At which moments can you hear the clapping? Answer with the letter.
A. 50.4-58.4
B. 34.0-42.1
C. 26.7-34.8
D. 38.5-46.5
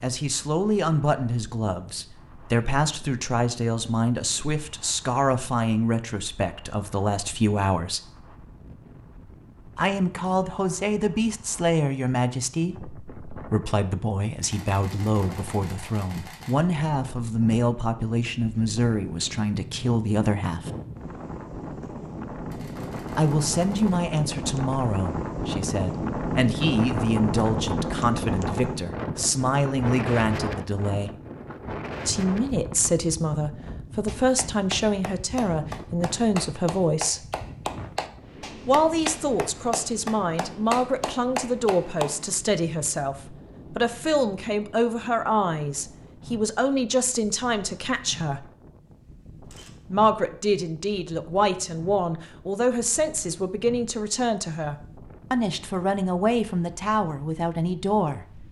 B.